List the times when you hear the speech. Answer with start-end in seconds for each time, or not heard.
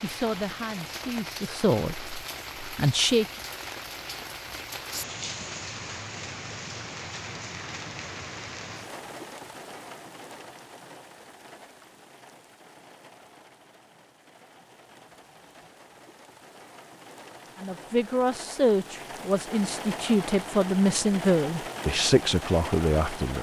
0.0-3.2, 17.6-23.3.